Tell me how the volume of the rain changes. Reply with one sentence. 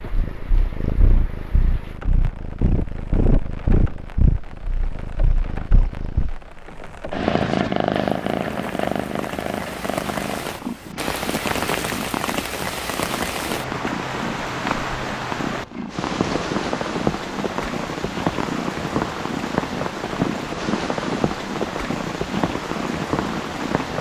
The volume of the rain goes up.